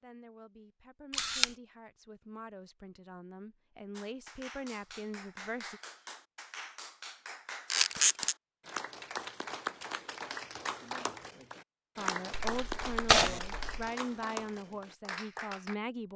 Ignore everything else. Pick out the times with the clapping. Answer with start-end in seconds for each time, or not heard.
4.0-15.8.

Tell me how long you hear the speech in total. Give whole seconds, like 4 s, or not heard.
10 s.